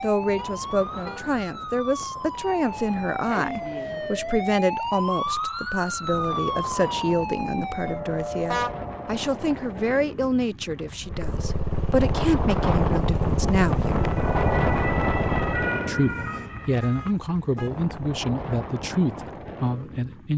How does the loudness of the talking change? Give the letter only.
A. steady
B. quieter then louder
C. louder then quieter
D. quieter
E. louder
A.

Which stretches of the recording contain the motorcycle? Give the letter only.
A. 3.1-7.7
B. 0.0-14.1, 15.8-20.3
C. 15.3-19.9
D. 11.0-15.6
D.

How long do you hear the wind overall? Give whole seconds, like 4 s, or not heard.
20 s.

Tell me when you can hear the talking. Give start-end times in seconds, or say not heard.
0.0-14.1, 15.8-20.3.